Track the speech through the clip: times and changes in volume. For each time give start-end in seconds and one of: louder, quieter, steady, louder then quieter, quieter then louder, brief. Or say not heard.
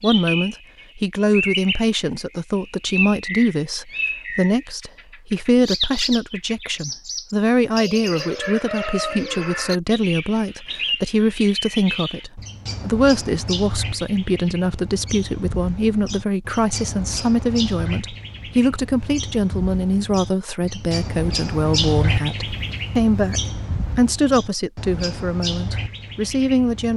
0.0-26.9 steady.